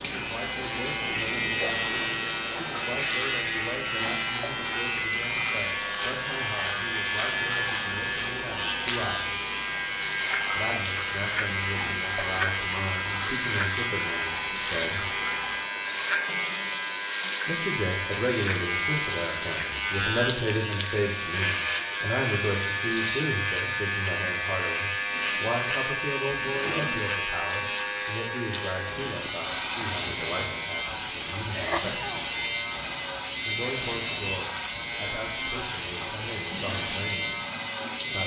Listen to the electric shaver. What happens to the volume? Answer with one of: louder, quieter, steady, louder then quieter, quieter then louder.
steady.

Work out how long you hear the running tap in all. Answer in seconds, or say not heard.
38 s.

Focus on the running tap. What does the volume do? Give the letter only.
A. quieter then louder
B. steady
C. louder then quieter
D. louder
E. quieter
B.